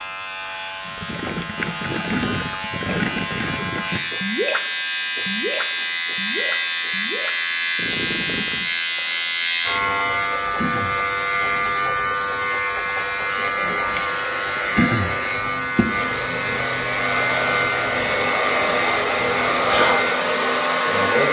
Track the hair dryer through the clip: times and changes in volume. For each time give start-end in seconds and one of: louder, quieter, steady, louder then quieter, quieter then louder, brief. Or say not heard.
13.4-21.2 louder.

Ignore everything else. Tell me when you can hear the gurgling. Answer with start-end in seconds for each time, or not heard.
0.8-8.7.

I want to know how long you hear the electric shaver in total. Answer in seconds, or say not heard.
21 s.